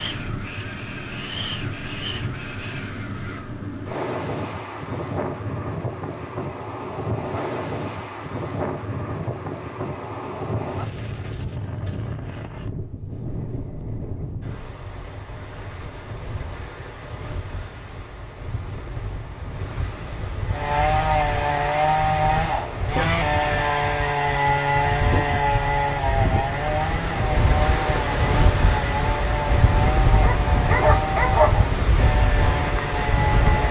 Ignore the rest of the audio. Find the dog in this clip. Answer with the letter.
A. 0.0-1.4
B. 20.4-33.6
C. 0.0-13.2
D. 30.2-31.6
D.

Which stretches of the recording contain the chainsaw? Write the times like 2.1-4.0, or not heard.
20.4-33.6.